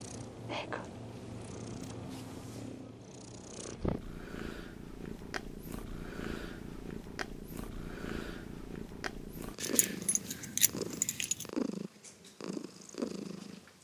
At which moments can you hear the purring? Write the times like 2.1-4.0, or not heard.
0.0-13.8.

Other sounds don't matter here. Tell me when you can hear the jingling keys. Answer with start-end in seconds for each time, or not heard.
9.6-11.4.